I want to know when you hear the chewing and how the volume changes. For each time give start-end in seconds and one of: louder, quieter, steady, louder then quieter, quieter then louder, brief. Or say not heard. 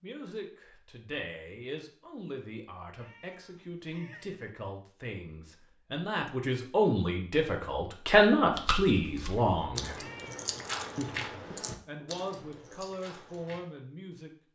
8.5-13.6 louder then quieter.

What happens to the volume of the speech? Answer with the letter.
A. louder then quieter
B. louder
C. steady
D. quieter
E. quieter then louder
A.